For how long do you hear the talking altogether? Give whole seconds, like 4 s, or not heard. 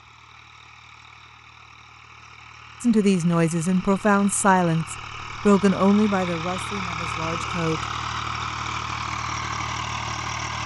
5 s.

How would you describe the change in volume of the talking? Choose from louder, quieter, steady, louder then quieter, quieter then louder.
quieter.